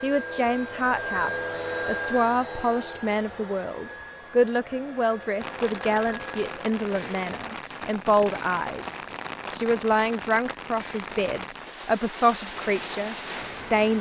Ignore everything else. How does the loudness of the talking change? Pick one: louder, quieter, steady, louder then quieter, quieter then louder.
steady.